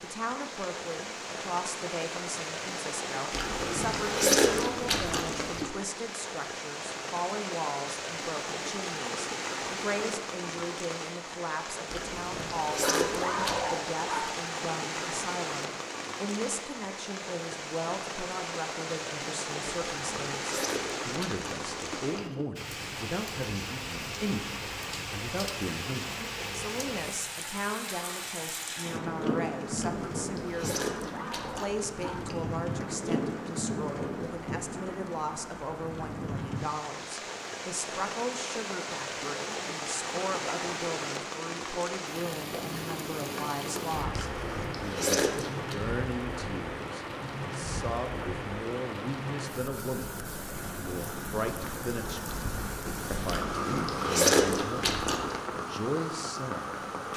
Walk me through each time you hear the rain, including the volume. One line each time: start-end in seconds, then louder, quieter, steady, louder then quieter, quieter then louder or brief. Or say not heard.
0.0-57.1 steady.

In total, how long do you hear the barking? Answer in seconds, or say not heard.
3 s.